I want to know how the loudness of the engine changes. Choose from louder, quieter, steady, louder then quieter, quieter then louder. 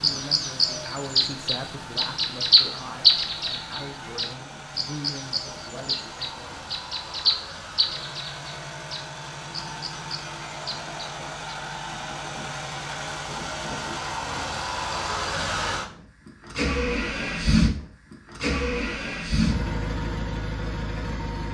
louder.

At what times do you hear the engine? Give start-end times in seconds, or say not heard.
0.0-21.4.